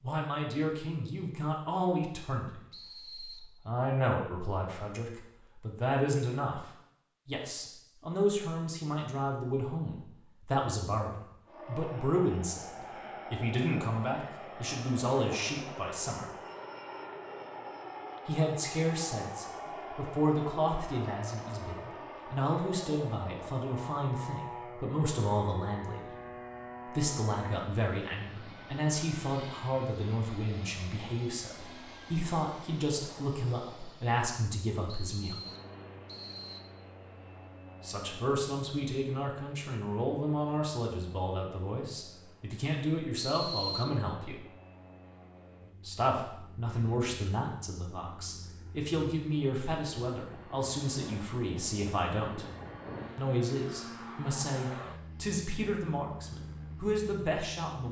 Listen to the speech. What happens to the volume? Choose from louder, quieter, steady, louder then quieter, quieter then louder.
steady.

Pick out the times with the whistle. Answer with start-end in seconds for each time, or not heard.
2.7-3.5, 34.9-36.6, 43.2-44.0.